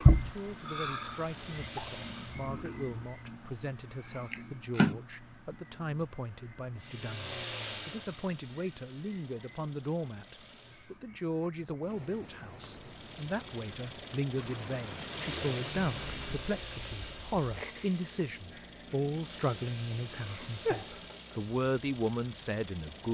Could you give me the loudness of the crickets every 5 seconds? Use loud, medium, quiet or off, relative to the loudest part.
loud, medium, quiet, quiet, quiet.